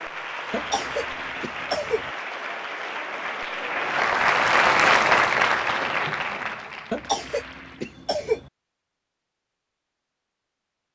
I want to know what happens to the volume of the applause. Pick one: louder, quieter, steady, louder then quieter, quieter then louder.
louder then quieter.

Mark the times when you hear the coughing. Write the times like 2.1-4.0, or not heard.
0.5-2.1, 6.9-8.5.